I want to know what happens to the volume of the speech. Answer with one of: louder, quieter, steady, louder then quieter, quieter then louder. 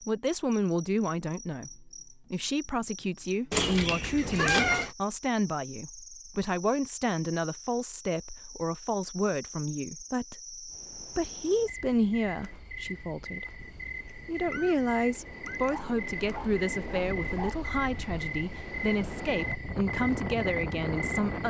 steady.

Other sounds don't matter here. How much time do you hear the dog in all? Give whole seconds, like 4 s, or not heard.
2 s.